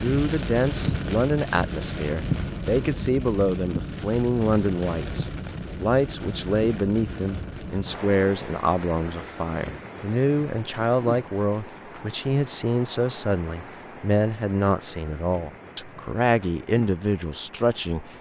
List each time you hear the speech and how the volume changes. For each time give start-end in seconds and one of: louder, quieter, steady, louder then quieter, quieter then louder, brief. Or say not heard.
0.0-18.1 steady.